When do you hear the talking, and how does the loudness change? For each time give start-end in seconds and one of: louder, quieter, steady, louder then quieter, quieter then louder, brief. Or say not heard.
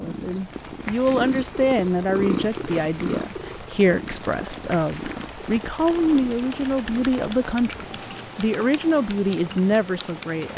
0.0-10.5 steady.